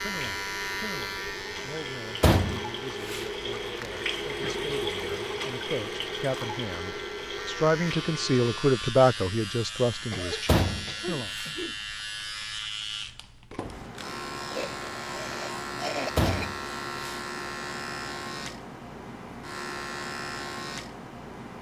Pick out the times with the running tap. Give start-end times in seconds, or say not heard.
0.0-8.5.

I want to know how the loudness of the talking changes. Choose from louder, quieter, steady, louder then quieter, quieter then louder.
louder.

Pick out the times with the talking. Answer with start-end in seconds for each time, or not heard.
0.0-11.3.